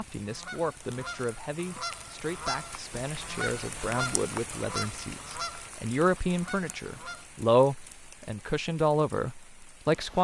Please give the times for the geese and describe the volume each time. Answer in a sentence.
The geese can be heard from 0.1 to 7.2 s, getting louder then quieter.